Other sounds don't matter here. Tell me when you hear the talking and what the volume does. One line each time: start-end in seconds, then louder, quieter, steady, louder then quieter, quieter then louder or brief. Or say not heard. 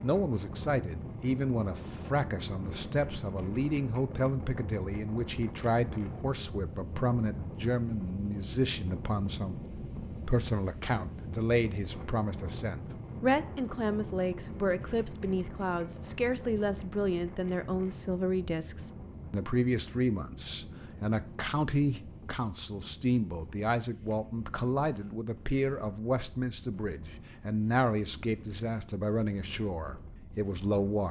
0.0-31.0 steady.